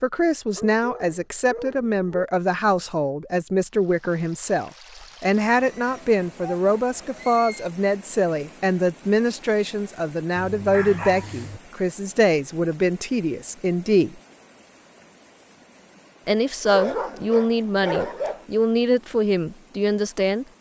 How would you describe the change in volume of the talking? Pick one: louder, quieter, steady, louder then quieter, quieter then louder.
steady.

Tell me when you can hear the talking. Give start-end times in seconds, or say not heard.
0.0-14.2, 16.2-20.4.